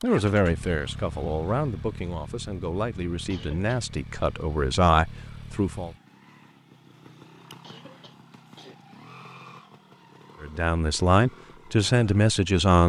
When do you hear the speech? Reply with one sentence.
You can hear the speech from 0.0 to 5.9 s and from 10.4 to 12.8 s.